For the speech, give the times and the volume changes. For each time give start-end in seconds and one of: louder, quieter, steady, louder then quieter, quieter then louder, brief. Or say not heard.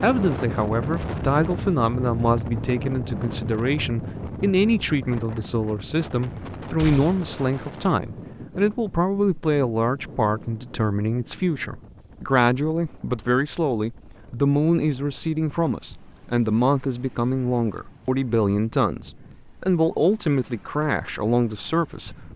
0.0-22.3 steady.